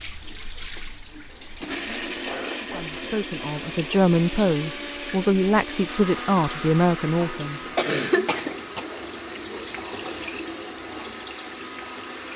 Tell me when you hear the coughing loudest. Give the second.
8 s.